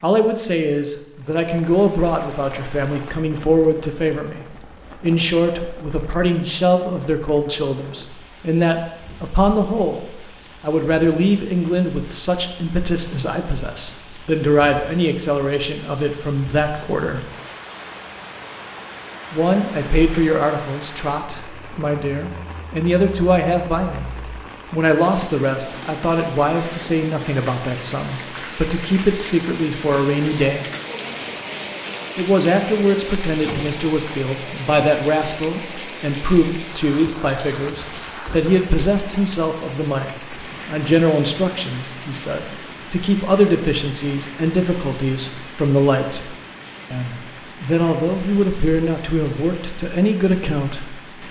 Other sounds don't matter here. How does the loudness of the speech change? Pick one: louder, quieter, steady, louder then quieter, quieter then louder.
steady.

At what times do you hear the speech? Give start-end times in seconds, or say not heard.
0.0-17.2, 19.3-24.1, 24.7-30.6, 32.1-51.0.